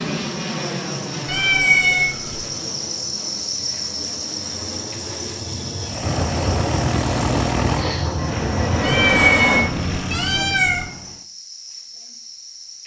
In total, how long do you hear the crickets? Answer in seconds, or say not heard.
13 s.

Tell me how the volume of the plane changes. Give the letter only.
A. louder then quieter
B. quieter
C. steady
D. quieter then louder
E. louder
D.